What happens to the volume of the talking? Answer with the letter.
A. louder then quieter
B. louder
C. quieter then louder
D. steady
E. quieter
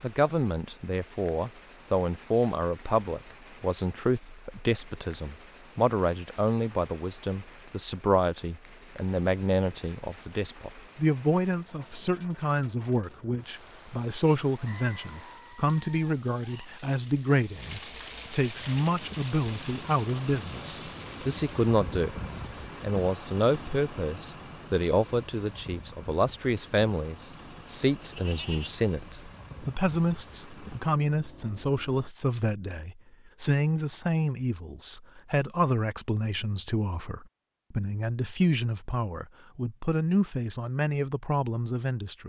D.